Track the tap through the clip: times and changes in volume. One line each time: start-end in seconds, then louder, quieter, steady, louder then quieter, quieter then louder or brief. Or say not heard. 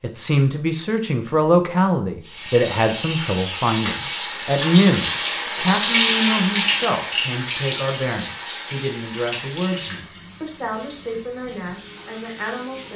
2.2-12.9 louder then quieter.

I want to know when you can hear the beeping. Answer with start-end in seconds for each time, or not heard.
not heard.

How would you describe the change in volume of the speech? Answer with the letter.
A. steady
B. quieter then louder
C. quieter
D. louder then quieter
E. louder
C.